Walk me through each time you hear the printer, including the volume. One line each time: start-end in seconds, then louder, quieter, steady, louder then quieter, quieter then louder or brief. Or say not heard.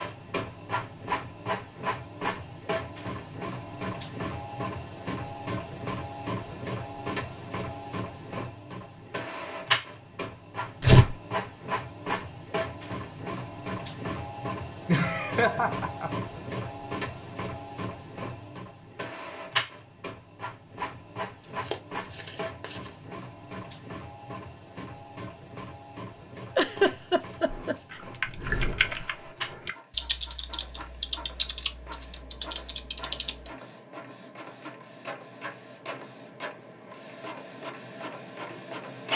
0.0-39.1 quieter.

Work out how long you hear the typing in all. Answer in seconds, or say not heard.
6 s.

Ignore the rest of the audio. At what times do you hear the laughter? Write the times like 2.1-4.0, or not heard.
14.8-16.1, 26.6-27.8.